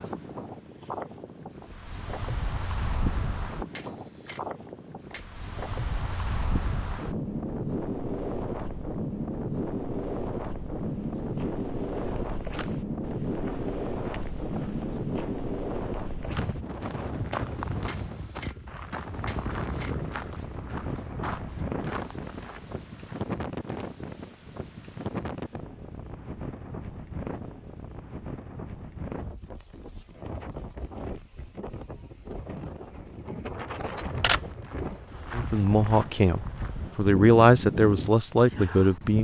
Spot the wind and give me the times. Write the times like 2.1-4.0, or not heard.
0.0-39.1.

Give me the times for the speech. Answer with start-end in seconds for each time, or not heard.
35.3-39.1.